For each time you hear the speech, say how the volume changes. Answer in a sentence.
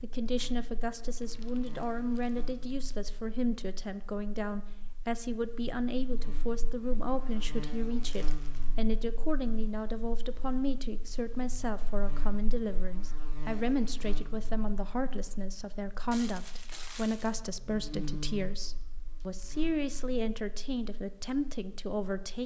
You can hear the speech from 0.0 to 22.4 s, at a steady volume.